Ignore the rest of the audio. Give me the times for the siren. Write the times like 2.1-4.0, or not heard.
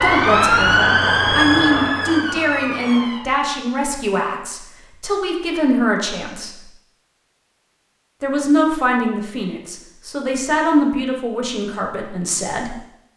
0.0-3.4.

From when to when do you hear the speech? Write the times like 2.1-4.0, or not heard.
0.0-6.7, 8.2-12.8.